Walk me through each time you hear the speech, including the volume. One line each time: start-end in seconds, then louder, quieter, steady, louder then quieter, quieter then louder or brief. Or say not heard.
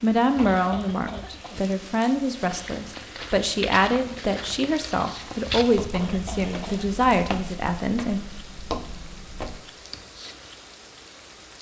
0.0-8.2 steady.